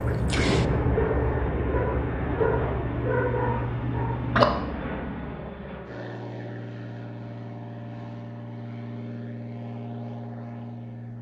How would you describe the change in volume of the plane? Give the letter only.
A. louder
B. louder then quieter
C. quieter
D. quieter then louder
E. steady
C.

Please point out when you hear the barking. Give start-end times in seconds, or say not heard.
0.0-4.8.